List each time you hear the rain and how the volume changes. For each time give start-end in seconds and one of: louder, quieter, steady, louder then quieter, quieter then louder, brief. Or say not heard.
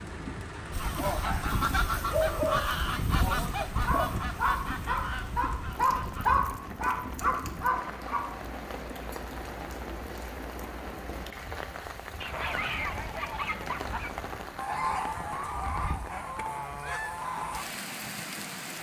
0.0-18.7 steady.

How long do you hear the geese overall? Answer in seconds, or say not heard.
11 s.